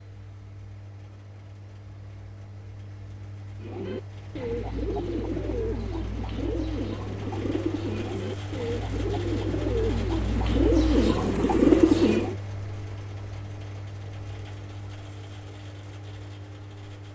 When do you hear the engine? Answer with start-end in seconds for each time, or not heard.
0.0-17.0.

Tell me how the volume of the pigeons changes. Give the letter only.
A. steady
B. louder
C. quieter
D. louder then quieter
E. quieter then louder
B.